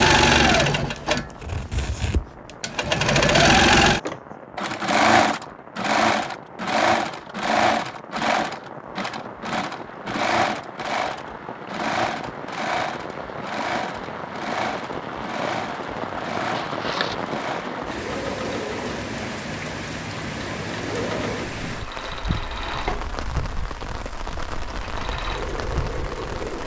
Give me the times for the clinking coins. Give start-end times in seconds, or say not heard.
16.5-17.1.